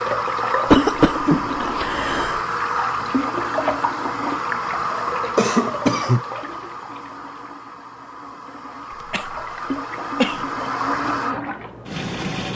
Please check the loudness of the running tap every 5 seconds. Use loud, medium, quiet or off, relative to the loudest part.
loud, medium, loud.